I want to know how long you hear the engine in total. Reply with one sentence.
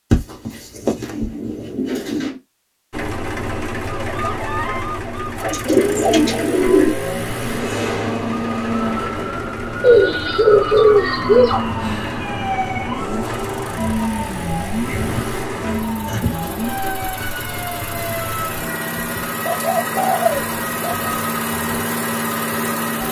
The engine can be heard for 20 seconds in total.